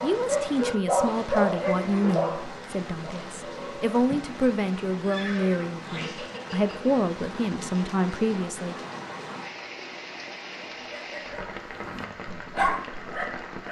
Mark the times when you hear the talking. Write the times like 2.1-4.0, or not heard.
0.0-8.8.